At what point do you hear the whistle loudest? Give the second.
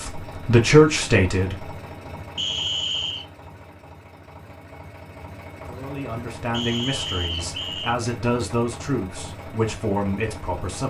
3 s.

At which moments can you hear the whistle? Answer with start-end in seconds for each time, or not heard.
2.4-3.2, 6.5-8.0.